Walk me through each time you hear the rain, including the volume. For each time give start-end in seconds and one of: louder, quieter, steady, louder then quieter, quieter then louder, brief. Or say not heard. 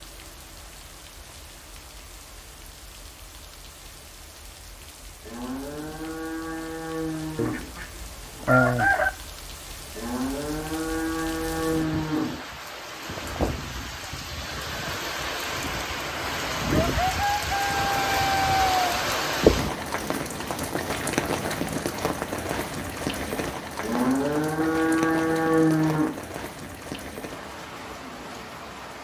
0.0-28.9 louder then quieter.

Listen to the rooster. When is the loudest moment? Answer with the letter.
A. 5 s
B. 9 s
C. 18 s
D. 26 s
B.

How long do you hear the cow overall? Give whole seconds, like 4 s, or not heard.
7 s.